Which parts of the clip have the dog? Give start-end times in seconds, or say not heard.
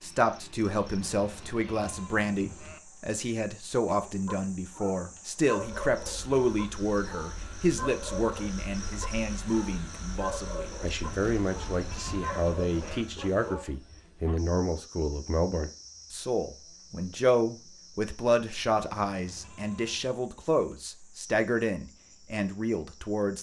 4.0-14.4.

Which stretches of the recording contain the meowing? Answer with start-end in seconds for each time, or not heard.
not heard.